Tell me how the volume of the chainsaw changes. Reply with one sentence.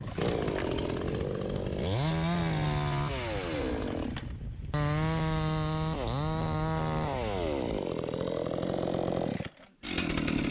The loudness of the chainsaw stays about the same.